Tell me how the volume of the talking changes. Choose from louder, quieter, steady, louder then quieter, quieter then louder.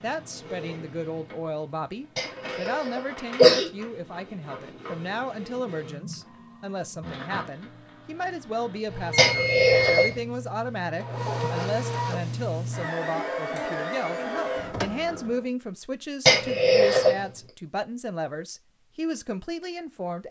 steady.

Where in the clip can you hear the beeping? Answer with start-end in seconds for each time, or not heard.
9.2-10.2.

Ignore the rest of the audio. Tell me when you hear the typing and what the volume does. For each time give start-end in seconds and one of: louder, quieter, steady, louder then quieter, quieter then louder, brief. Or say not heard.
not heard.